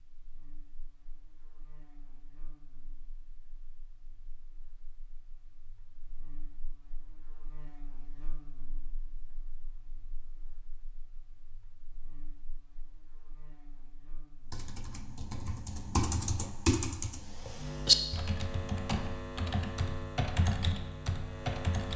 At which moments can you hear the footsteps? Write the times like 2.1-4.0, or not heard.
not heard.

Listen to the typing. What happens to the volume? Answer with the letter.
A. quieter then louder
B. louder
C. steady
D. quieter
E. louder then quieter
E.